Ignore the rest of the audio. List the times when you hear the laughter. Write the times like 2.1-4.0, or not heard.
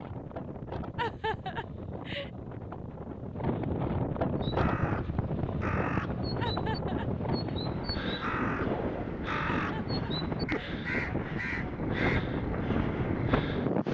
0.9-2.3, 6.4-7.5, 9.5-10.8.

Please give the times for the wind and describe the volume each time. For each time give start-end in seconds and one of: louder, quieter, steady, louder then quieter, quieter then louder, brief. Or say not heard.
0.0-13.9 louder.